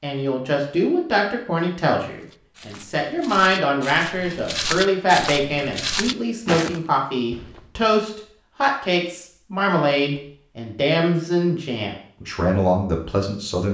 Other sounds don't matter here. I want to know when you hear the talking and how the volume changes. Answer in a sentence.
The talking can be heard from 0.0 to 13.6 s, at a steady volume.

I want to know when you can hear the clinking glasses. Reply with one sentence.
The clinking glasses can't be heard in this clip.